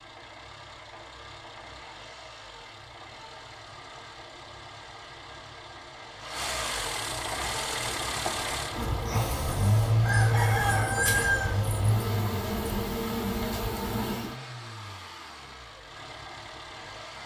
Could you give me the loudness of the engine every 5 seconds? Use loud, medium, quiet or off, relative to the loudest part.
medium, loud, medium, medium.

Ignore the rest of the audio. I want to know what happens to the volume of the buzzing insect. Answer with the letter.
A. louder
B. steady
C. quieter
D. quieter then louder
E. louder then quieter
B.